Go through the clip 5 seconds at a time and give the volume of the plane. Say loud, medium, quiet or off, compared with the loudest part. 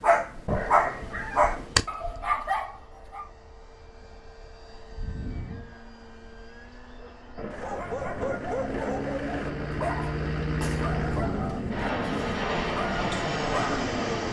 quiet, medium, loud.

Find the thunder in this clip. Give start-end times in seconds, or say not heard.
7.3-11.9.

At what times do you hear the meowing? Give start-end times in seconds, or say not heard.
0.5-1.9.